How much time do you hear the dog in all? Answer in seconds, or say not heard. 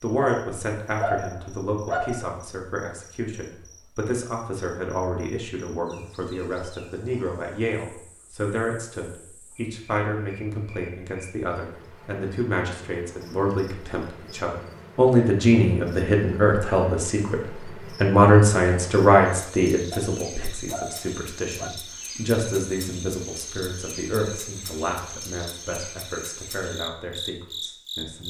4 s.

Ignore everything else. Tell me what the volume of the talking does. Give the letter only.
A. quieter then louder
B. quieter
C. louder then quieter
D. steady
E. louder
C.